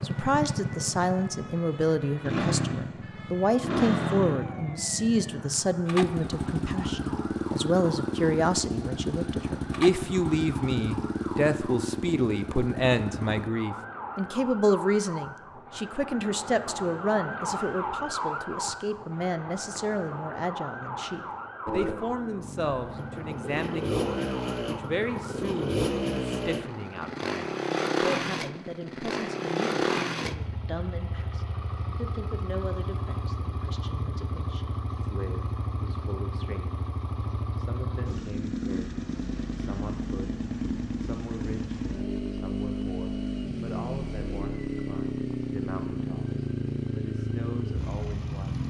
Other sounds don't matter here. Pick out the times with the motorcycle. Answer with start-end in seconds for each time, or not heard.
0.0-13.5, 21.6-48.6.